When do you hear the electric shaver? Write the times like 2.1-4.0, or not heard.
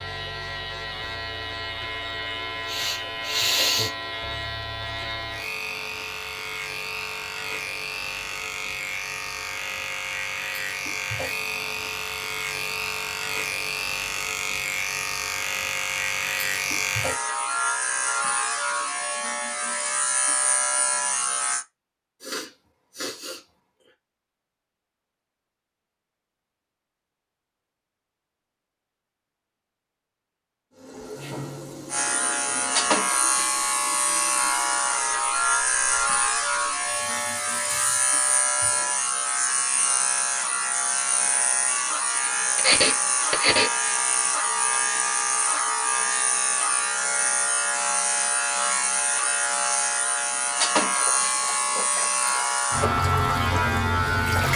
0.0-21.6, 31.9-54.5.